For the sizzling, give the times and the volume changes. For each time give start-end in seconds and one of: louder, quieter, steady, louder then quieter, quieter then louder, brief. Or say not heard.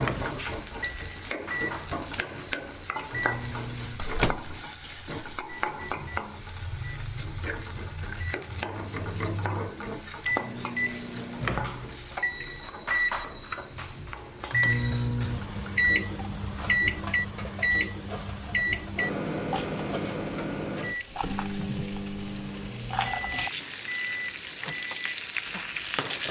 0.0-26.2 quieter then louder.